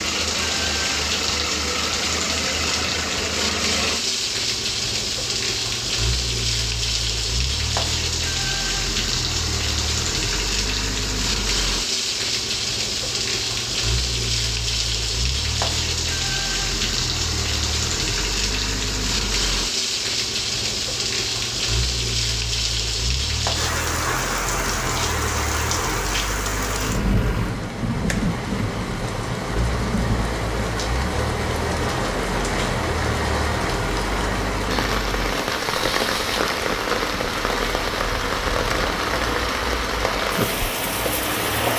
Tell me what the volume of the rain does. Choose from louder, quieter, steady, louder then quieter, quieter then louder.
steady.